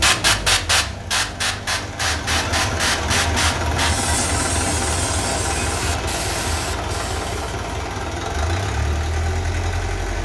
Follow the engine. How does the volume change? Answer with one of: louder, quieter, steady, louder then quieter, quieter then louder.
louder.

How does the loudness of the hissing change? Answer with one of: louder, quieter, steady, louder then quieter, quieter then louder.
quieter.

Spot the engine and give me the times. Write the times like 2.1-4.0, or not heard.
0.0-10.1.